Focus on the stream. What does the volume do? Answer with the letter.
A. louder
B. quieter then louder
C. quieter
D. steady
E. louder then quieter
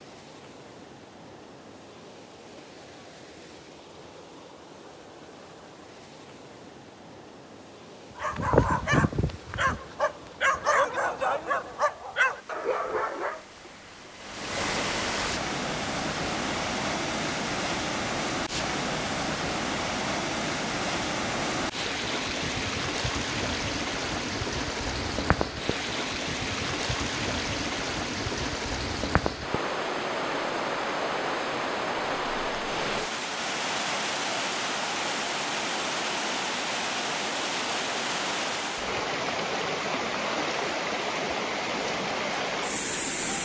A.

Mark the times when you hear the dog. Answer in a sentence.
The dog can be heard from 8.2 to 13.4 s.